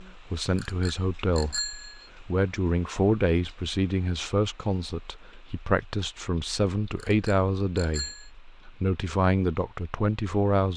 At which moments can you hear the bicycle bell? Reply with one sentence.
You can hear the bicycle bell from 0.6 to 2.1 s and from 7.0 to 8.3 s.